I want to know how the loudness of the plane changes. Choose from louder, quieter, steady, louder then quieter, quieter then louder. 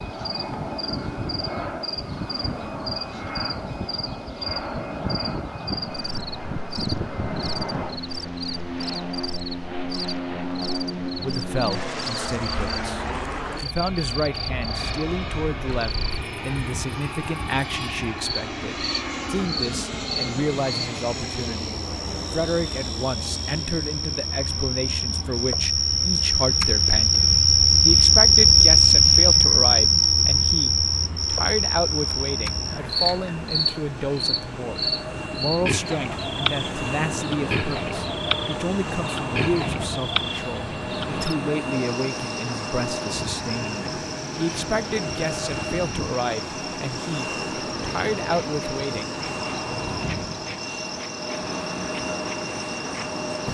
quieter then louder.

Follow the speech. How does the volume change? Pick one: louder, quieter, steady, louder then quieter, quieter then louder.
steady.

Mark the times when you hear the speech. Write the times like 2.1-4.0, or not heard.
11.2-49.1.